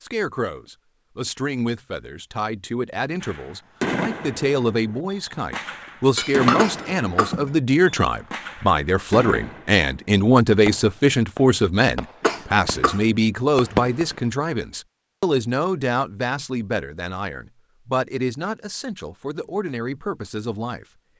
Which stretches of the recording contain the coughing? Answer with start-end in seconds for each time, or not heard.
6.5-7.4, 12.2-13.1.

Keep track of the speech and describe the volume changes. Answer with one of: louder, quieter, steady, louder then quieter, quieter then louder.
louder then quieter.